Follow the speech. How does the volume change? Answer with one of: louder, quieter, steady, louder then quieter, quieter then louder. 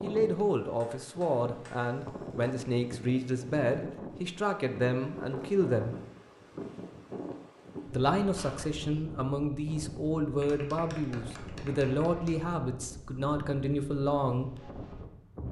steady.